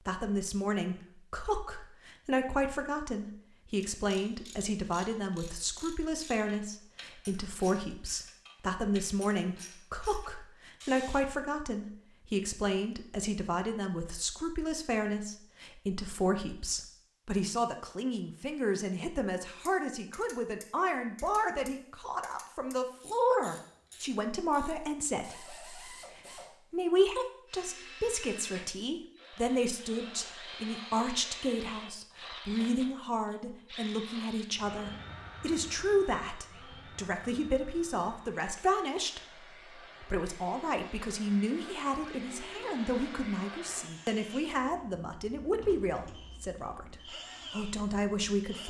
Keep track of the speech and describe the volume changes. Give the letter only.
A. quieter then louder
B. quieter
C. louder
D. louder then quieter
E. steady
E.